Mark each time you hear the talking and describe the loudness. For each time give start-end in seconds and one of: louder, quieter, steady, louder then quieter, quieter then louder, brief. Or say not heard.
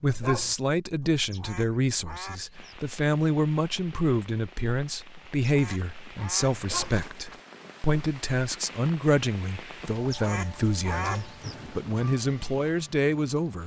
0.0-13.6 steady.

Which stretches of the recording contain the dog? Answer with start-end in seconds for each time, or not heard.
0.0-0.6, 6.5-7.0, 10.9-11.3.